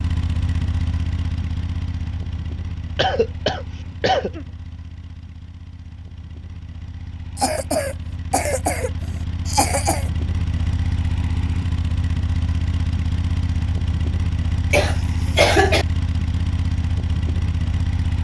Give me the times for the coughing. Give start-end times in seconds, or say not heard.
3.0-4.5, 7.3-10.1, 14.7-15.8.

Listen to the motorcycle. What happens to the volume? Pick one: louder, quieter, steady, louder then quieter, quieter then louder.
quieter then louder.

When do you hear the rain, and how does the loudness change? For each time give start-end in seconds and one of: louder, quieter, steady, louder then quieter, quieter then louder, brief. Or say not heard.
not heard.